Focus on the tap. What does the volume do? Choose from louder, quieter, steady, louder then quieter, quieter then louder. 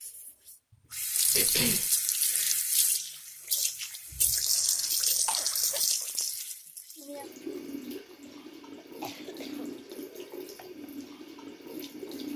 quieter.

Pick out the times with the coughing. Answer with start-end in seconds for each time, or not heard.
1.3-1.9, 4.5-5.8, 8.2-9.8.